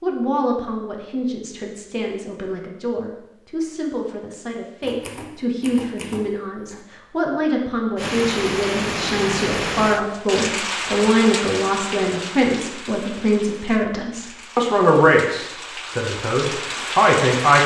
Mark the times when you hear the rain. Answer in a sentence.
You can hear the rain from 8.0 to 17.6 s.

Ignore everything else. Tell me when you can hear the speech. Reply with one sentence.
You can hear the speech from 0.0 to 17.6 s.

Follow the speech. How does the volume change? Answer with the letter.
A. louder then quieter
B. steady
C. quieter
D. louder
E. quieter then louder
D.